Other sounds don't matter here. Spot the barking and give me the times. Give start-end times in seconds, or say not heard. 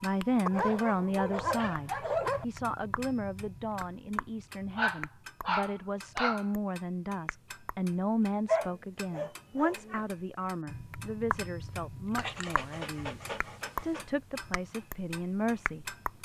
0.5-2.5, 4.8-6.5, 8.4-10.1, 12.2-14.1.